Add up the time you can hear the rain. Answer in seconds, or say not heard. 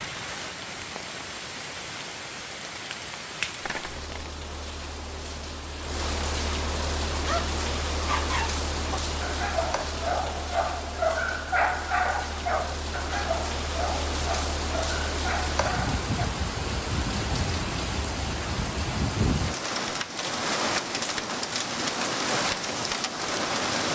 24 s.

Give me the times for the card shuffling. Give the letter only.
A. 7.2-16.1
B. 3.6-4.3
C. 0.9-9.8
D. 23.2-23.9
B.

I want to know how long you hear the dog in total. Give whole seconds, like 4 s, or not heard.
9 s.